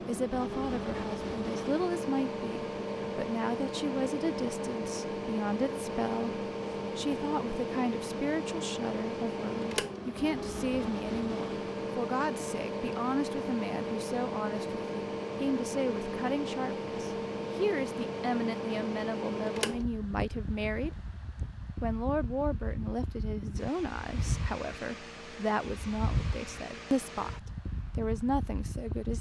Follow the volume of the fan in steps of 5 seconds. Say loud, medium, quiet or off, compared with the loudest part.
loud, loud, loud, loud, medium, medium.